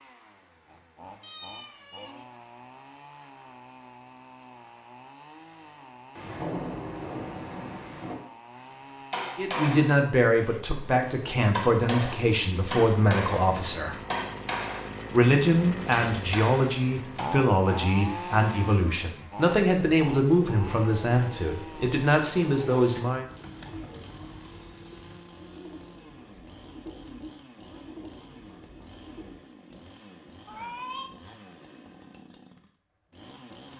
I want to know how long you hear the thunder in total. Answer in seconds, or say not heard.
2 s.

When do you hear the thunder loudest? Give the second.
7 s.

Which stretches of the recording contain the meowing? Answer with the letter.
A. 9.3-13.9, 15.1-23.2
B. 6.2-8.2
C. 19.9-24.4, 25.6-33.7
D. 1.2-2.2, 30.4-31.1
D.